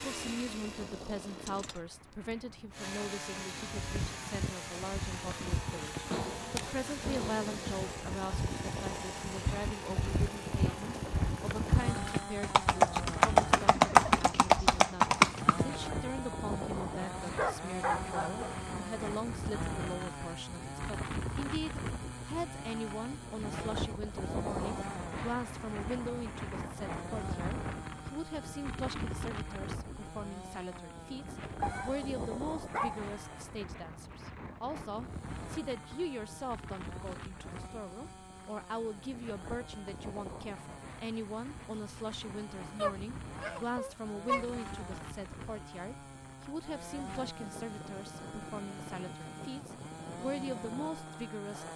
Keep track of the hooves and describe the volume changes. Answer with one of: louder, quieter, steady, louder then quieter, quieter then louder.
louder.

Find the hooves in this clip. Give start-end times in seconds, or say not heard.
3.8-15.9.